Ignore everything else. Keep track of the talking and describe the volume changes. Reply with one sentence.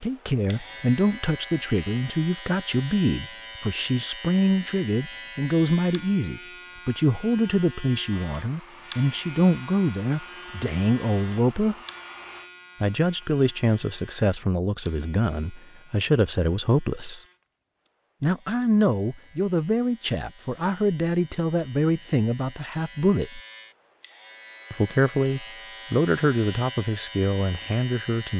The loudness of the talking stays about the same.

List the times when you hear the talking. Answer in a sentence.
You can hear the talking from 0.0 to 11.8 s, from 12.8 to 17.2 s, from 18.2 to 23.4 s and from 24.7 to 28.3 s.